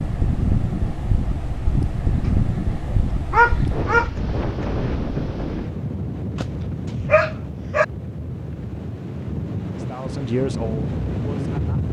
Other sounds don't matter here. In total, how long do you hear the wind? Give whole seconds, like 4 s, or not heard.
12 s.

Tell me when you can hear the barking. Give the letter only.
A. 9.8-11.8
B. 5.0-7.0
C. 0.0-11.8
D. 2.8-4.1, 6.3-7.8
D.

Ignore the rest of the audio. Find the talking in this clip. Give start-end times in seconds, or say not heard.
9.8-11.8.